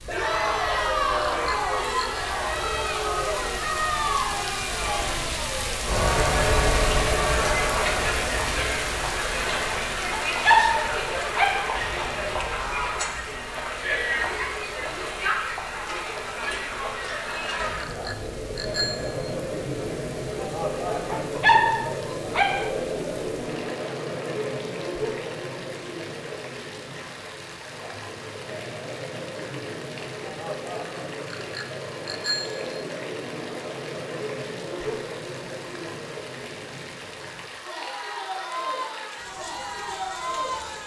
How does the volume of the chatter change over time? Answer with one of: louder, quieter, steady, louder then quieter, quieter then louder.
quieter.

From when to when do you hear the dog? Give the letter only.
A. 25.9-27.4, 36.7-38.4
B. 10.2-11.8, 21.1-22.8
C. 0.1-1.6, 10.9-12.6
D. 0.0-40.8
B.